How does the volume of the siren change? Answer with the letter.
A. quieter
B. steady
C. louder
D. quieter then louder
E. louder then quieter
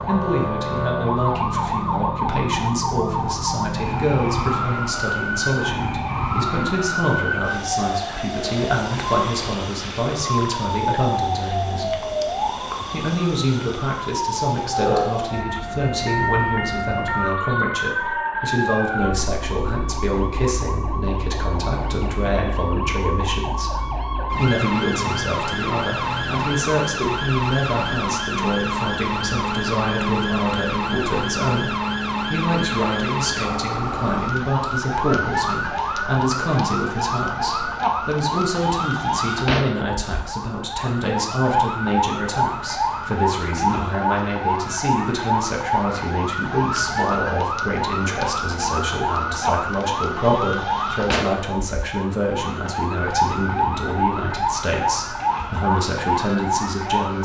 B.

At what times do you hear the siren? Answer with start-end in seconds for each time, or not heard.
0.0-57.1.